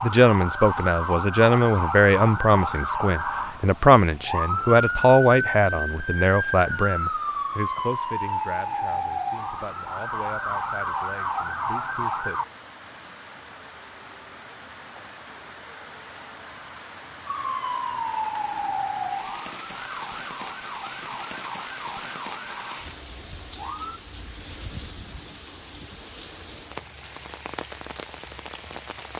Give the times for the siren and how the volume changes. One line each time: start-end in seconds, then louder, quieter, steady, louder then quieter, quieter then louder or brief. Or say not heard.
0.0-12.4 steady
17.2-24.0 quieter.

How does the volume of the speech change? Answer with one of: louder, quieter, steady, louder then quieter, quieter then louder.
quieter.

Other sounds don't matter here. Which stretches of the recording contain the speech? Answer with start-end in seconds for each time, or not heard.
0.0-12.4.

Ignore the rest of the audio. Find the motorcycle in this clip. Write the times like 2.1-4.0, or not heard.
not heard.